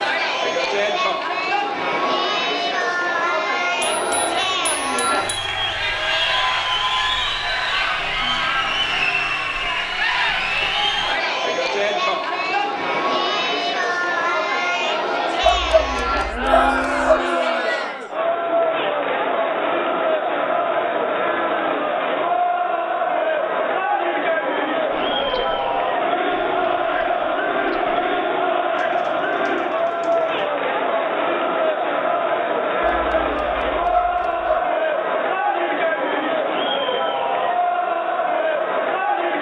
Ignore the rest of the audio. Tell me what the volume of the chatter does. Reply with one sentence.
The volume of the chatter stays about the same.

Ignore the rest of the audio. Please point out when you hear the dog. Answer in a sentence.
The dog can be heard from 15.4 to 17.2 s and from 32.8 to 34.6 s.